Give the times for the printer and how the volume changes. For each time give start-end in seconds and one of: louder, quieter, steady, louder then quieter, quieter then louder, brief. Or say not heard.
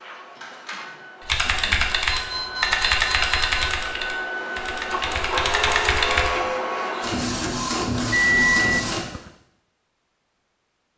0.0-9.0 louder.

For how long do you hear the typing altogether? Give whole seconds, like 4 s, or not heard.
5 s.